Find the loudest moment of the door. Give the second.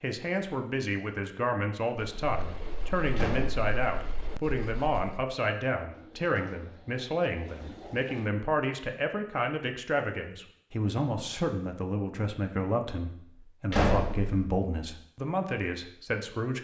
14 s.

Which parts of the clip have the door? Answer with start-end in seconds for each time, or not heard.
3.1-3.7, 13.7-14.4.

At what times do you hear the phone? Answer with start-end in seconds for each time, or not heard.
not heard.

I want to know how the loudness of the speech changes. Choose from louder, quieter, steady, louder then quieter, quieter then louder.
steady.